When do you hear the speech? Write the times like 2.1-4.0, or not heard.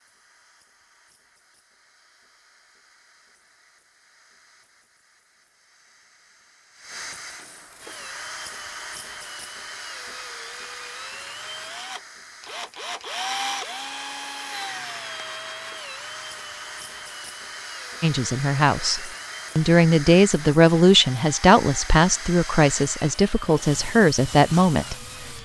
18.0-24.9.